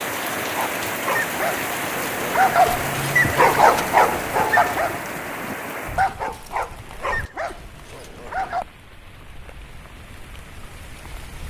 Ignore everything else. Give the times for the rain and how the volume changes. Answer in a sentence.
The rain can be heard from 0.0 to 11.4 s, getting quieter.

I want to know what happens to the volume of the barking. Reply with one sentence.
The loudness of the barking goes up, then down.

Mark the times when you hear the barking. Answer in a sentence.
You can hear the barking from 0.5 to 8.7 s.